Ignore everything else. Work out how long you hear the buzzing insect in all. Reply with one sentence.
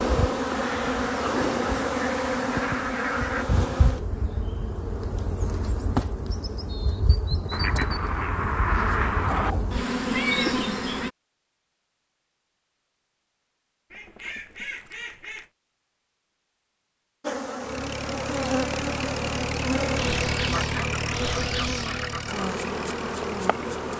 The buzzing insect can be heard for 18 seconds in total.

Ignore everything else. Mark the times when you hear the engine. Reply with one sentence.
You can hear the engine from 17.6 to 23.9 s.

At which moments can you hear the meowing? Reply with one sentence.
You can hear the meowing from 10.1 to 11.1 s.